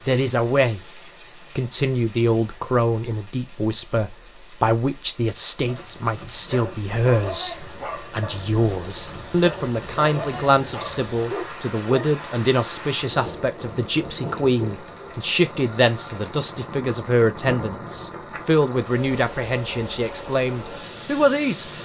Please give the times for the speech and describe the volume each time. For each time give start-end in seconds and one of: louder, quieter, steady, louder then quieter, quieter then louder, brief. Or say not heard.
0.1-21.6 steady.